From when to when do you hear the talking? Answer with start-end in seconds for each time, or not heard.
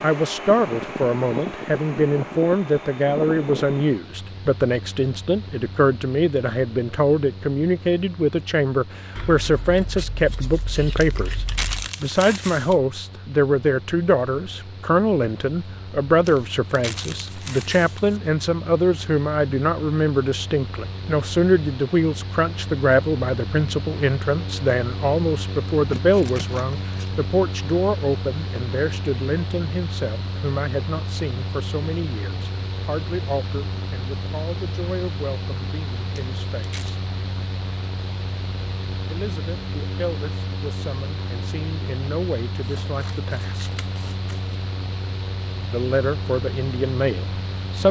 0.0-36.8, 39.0-43.8, 45.7-47.8.